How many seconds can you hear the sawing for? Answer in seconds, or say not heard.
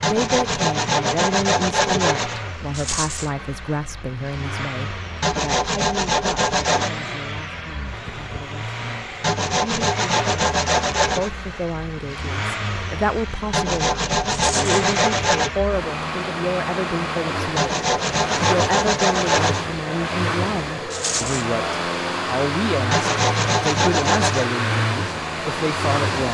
12 s.